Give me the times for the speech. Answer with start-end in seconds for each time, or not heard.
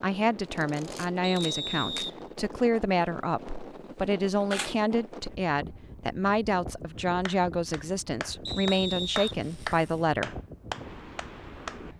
0.0-10.3.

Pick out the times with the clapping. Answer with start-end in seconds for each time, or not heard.
7.2-11.8.